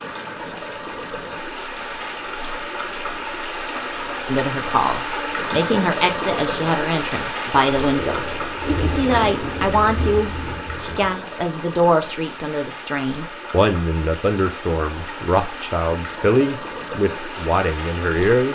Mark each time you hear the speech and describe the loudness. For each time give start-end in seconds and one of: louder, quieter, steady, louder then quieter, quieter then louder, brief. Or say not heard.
4.2-18.5 steady.